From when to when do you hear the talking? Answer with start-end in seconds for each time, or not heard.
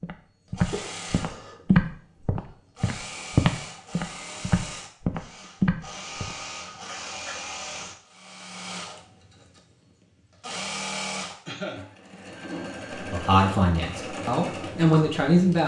13.0-15.6.